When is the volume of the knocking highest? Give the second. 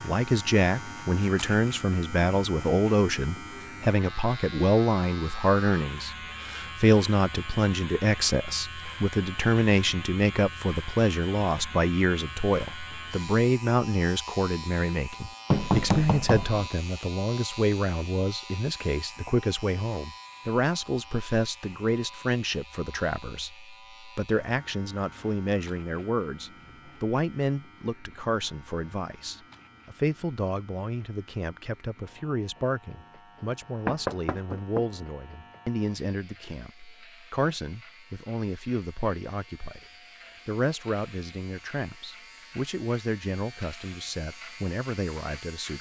16 s.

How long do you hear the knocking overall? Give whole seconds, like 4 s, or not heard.
2 s.